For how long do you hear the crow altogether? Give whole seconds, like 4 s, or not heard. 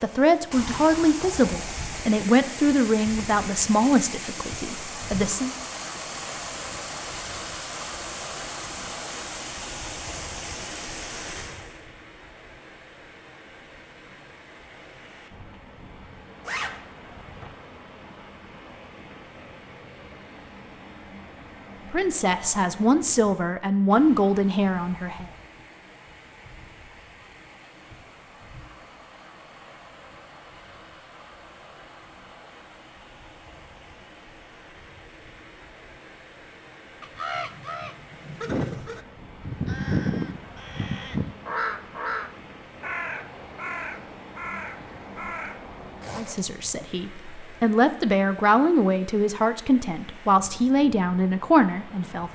9 s.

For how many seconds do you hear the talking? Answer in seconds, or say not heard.
15 s.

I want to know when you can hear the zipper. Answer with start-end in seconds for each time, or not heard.
16.4-16.8, 46.0-46.6.